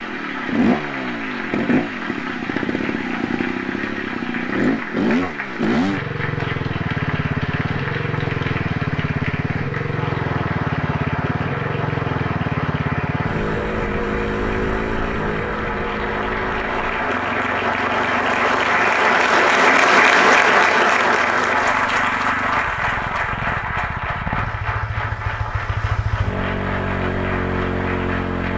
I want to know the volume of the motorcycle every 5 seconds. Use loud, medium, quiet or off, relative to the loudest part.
loud, loud, loud, medium, medium, loud.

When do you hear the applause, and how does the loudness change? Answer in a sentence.
You can hear the applause from 0.0 to 28.5 s, getting louder then quieter.